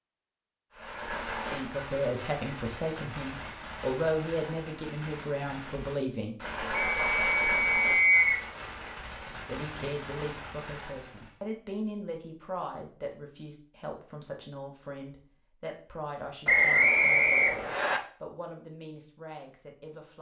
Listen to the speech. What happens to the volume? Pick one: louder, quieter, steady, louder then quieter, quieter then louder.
quieter.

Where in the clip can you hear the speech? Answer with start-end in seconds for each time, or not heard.
1.5-6.3, 9.3-20.1.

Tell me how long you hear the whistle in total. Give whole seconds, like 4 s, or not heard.
3 s.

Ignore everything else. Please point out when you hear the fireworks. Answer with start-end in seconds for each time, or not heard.
0.7-11.3.